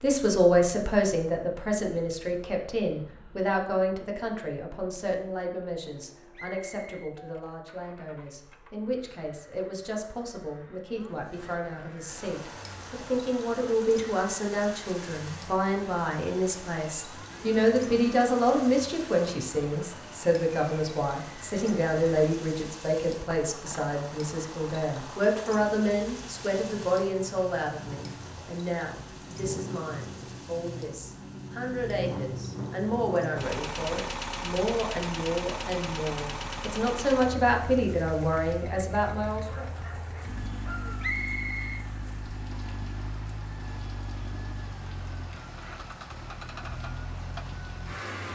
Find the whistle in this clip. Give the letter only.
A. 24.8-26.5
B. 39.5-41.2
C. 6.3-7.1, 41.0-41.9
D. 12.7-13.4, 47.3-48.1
C.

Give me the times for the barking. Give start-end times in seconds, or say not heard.
39.5-41.2.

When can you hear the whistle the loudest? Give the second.
41 s.